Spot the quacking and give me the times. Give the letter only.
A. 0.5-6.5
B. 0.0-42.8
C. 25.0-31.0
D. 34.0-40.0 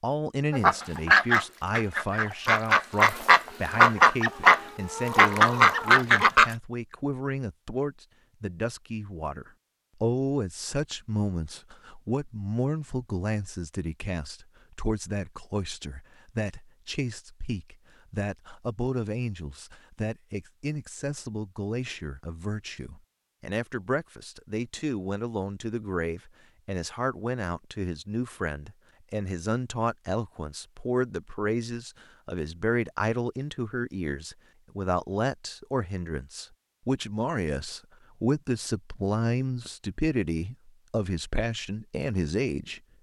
A.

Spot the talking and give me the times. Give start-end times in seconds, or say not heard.
0.0-42.8.